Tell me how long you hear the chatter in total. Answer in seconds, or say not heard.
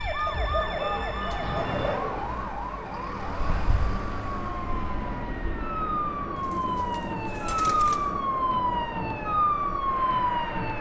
not heard.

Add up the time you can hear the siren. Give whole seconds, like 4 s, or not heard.
11 s.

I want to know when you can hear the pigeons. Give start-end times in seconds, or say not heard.
0.2-2.2, 6.3-8.0.